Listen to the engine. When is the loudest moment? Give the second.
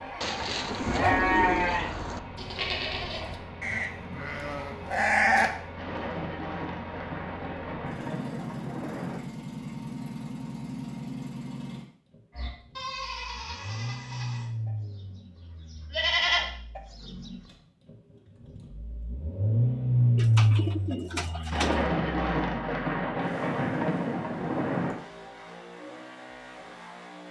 20 s.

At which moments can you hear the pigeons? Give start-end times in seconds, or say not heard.
0.2-2.2, 20.1-21.8.